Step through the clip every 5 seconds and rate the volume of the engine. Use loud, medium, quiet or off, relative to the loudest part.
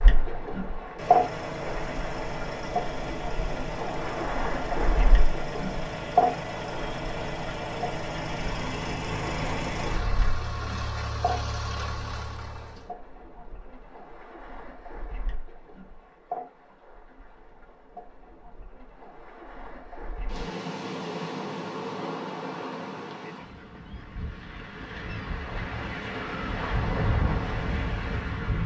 loud, loud, loud, off, off, off.